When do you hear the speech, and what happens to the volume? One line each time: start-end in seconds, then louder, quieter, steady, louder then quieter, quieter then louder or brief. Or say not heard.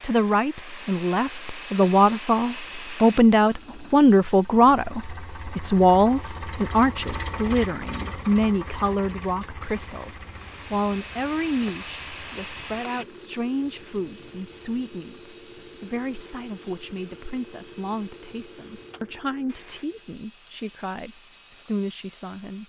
0.0-22.6 quieter.